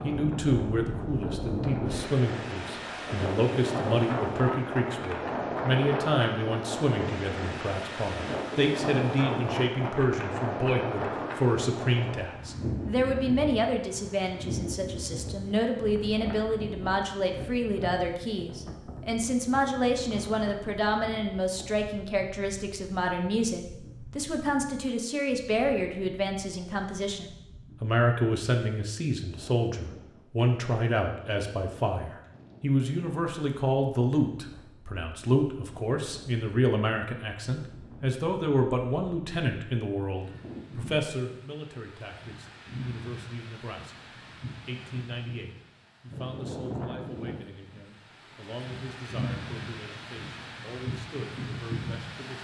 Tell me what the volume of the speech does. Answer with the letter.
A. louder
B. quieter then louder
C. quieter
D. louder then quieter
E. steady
C.